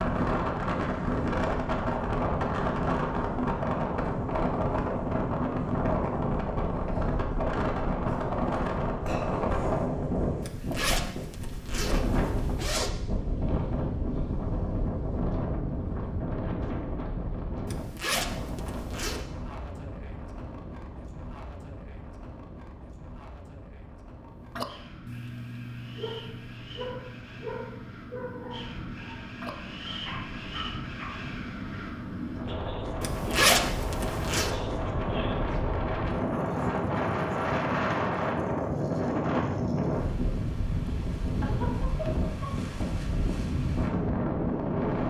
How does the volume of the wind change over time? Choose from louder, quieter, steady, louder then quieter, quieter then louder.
quieter then louder.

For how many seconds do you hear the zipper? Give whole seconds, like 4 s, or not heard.
6 s.